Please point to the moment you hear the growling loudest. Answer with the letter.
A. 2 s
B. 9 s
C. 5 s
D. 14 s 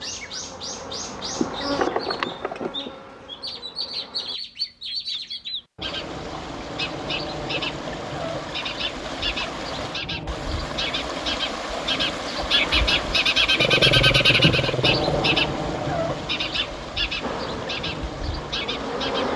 D.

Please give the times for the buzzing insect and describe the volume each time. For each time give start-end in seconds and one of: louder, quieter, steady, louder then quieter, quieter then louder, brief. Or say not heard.
0.0-4.4 louder then quieter
17.2-19.3 brief.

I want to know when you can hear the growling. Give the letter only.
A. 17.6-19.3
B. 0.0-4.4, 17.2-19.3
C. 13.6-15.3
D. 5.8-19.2
C.